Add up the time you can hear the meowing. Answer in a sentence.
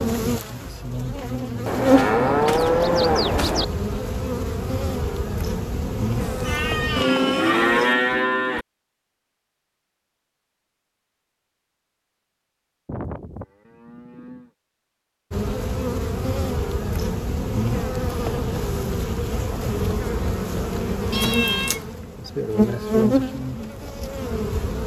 You can hear the meowing for 2 seconds altogether.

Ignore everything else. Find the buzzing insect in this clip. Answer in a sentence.
The buzzing insect can be heard from 0.0 to 7.0 s and from 15.3 to 24.8 s.